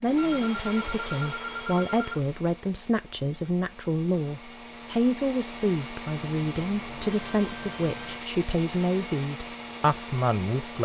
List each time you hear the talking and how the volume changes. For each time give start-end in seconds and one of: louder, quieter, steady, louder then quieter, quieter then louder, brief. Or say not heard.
0.0-10.8 steady.